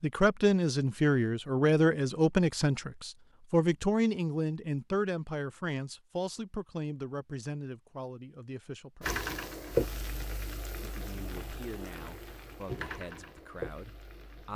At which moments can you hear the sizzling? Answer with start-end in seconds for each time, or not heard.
9.0-14.5.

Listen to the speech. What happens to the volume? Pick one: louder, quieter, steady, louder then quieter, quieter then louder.
quieter.